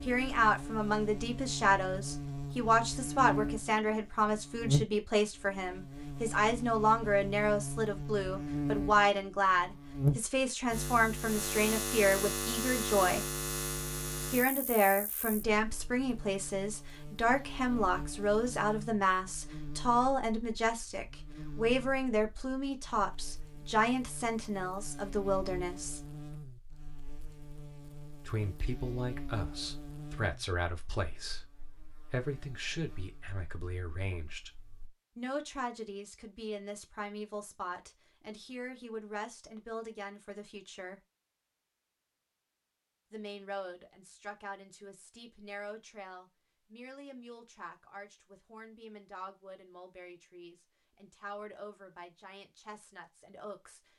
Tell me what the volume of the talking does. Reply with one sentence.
The volume of the talking goes down.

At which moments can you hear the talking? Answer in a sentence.
The talking can be heard from 0.0 to 13.2 s, from 14.3 to 26.0 s, from 28.2 to 34.5 s, from 35.1 to 41.0 s and from 43.1 to 53.9 s.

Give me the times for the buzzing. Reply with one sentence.
You can hear the buzzing from 0.0 to 34.9 s.